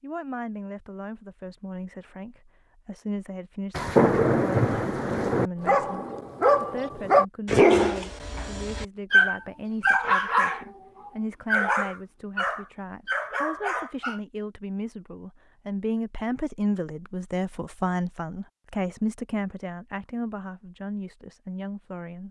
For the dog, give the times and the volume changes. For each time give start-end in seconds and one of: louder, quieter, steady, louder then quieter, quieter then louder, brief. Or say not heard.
5.6-14.2 quieter.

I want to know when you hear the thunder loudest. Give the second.
4 s.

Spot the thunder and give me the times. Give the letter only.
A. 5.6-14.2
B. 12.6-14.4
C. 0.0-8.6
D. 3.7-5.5
D.